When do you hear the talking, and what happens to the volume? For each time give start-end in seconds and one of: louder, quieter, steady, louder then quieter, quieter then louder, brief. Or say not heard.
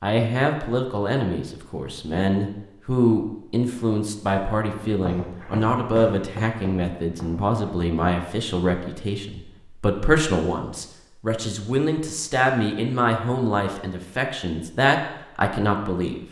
0.0-16.2 steady.